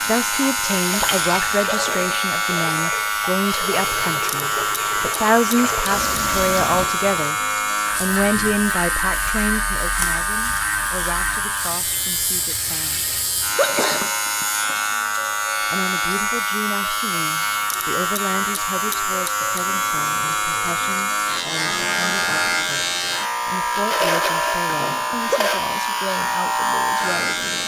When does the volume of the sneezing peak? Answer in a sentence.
The volume of the sneezing peaks at 14 seconds.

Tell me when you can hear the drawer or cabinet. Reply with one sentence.
The drawer or cabinet can't be heard in this clip.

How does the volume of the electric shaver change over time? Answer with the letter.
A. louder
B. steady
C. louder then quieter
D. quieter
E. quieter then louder
B.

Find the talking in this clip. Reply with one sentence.
You can hear the talking from 0.0 to 7.4 s, from 8.0 to 13.1 s and from 15.6 to 27.6 s.